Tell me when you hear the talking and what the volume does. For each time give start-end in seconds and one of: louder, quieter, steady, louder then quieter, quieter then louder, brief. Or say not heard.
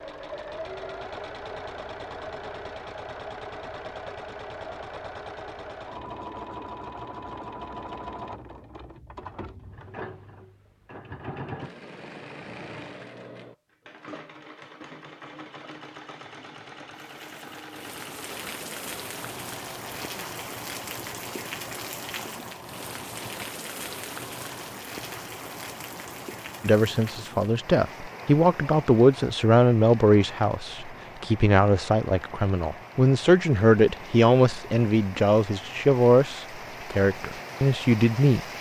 26.6-38.4 steady.